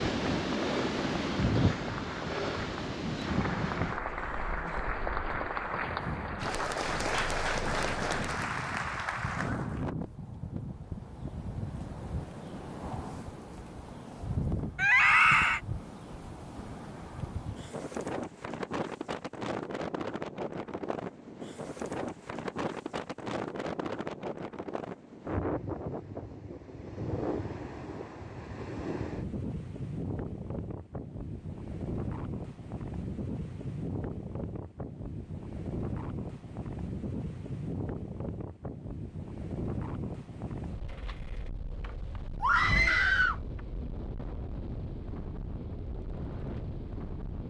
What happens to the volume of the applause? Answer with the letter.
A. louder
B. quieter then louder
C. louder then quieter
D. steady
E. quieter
A.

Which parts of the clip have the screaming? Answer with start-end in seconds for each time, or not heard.
14.8-15.6, 42.4-43.4.